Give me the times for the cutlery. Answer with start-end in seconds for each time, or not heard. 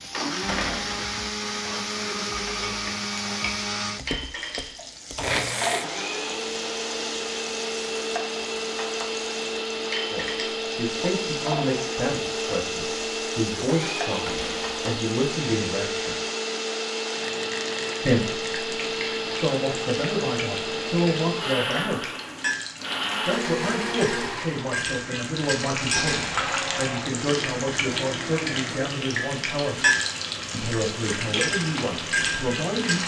not heard.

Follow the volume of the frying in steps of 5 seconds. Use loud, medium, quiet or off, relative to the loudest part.
medium, medium, medium, medium, medium, loud, loud.